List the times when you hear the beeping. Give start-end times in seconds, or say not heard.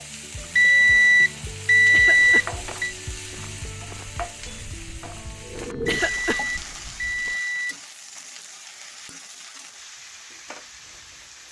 0.6-3.0, 5.9-7.8.